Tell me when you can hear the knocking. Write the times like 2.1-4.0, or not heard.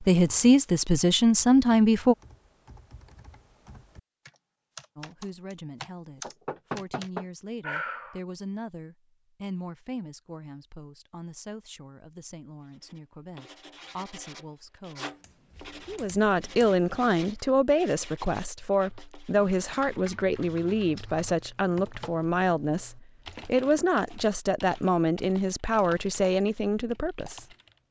6.2-8.2, 23.4-23.9.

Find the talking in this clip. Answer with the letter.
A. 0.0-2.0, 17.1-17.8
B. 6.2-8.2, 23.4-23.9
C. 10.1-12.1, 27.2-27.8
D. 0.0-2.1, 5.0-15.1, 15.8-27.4
D.